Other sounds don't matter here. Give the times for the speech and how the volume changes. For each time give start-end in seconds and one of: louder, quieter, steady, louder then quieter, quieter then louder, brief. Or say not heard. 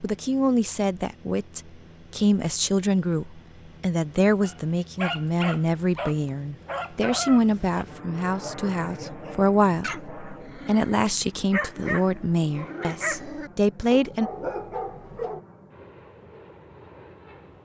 0.0-14.3 steady.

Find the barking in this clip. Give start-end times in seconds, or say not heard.
4.4-15.4.